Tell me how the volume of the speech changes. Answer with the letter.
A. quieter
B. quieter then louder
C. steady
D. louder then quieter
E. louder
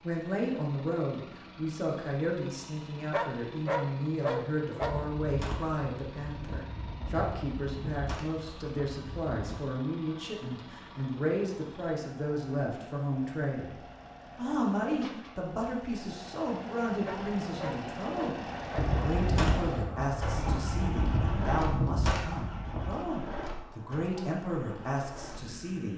C.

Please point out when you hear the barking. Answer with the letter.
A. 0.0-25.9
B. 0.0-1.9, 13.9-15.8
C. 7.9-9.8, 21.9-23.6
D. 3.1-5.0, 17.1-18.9
D.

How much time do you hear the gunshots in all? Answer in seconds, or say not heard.
9 s.